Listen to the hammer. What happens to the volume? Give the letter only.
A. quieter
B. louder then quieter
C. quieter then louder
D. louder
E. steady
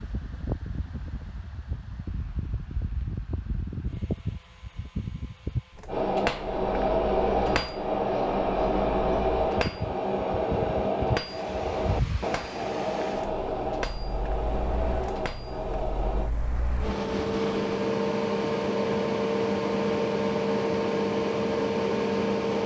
A.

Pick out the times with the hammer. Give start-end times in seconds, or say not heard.
5.8-16.3.